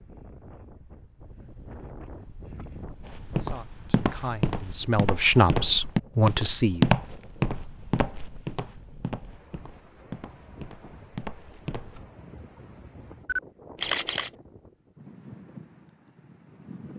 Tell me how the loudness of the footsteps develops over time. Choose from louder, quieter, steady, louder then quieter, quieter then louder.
louder then quieter.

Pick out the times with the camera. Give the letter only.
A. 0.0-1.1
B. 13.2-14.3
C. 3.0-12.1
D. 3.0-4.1
B.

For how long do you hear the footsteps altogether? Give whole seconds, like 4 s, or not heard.
9 s.